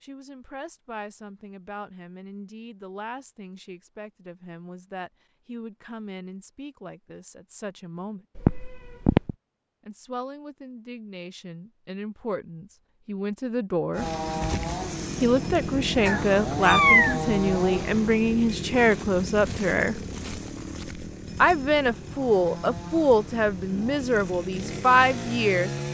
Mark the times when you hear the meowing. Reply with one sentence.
You can hear the meowing from 8.4 to 9.3 s and from 16.1 to 17.1 s.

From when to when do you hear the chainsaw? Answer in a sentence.
The chainsaw can be heard from 13.9 to 25.9 s.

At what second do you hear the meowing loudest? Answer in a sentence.
The volume of the meowing peaks at 17 seconds.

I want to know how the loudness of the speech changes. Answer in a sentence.
The volume of the speech goes up.